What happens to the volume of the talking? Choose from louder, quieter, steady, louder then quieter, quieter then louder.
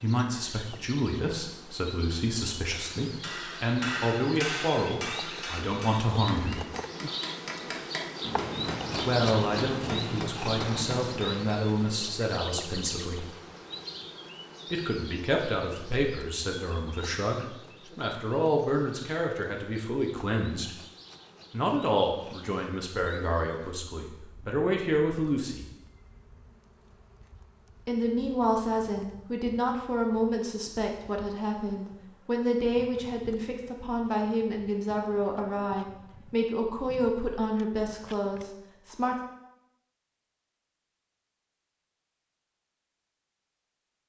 steady.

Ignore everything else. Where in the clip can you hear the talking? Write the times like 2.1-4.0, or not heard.
0.0-6.7, 9.0-13.2, 14.7-20.8, 21.5-25.6, 27.9-39.1.